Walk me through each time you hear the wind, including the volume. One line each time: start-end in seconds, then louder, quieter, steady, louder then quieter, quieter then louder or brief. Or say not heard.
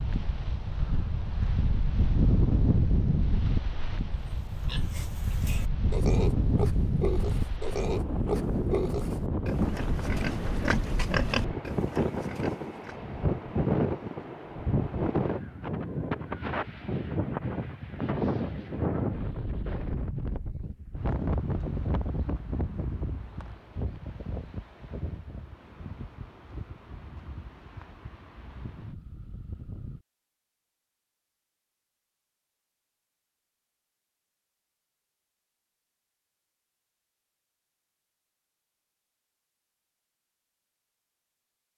0.0-30.0 quieter.